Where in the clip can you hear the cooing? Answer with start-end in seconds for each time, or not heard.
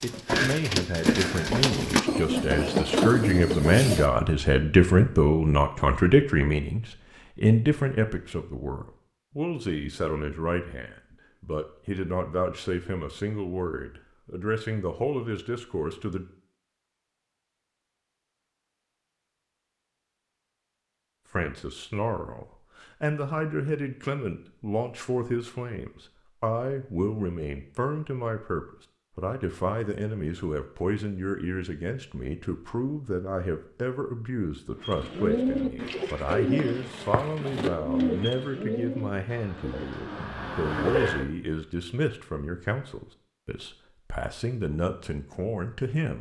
0.0-4.1, 34.8-41.2.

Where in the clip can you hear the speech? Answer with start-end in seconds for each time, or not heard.
0.0-16.2, 21.3-46.1.